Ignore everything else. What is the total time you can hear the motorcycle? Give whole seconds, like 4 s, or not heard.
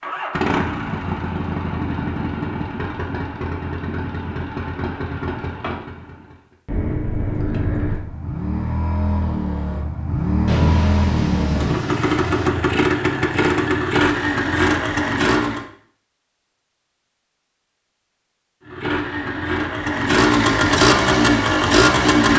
19 s.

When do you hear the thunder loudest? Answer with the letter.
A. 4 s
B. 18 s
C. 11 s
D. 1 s
C.